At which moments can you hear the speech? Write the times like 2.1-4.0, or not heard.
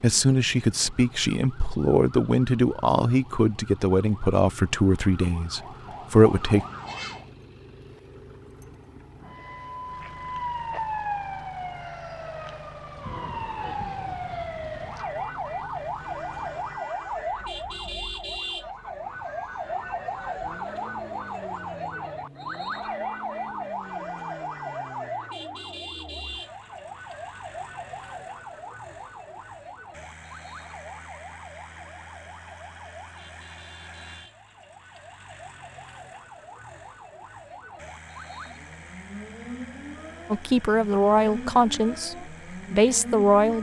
0.0-6.7, 40.3-43.5.